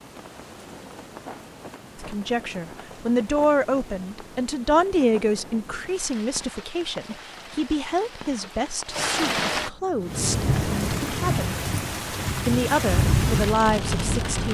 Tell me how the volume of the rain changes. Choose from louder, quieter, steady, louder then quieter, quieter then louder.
louder.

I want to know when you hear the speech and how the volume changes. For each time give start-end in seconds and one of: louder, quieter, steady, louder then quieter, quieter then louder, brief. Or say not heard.
1.9-11.6 quieter
12.4-14.4 brief.